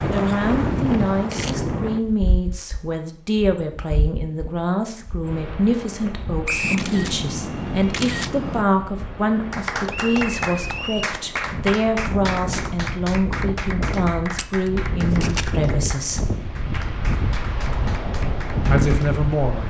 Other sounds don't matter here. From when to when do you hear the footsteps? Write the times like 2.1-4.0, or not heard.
not heard.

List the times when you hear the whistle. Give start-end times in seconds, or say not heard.
6.5-6.9, 9.8-11.2.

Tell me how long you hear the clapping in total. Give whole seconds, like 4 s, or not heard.
10 s.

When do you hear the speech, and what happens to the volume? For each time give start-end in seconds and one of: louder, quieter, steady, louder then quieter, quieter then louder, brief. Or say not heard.
0.1-16.4 steady
18.6-19.6 brief.